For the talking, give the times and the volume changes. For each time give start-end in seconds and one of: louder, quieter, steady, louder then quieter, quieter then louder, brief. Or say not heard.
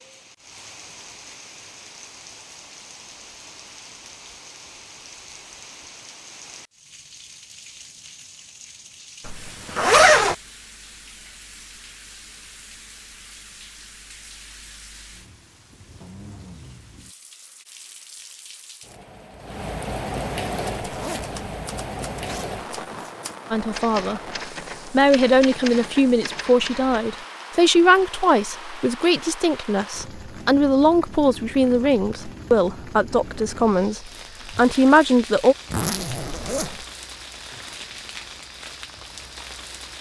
23.5-24.2 brief
24.9-35.5 steady.